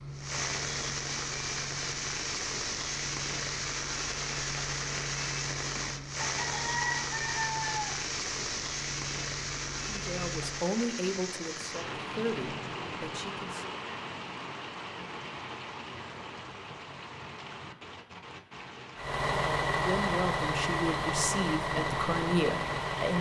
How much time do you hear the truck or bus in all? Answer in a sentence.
You can hear the truck or bus for 15 seconds altogether.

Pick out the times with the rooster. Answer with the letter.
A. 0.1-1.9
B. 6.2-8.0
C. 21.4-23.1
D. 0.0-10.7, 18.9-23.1
B.